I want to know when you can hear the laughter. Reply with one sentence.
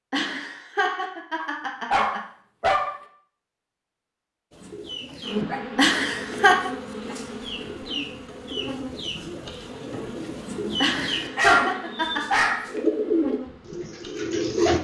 You can hear the laughter from 0.1 to 2.2 s, from 5.8 to 6.7 s and from 10.8 to 12.4 s.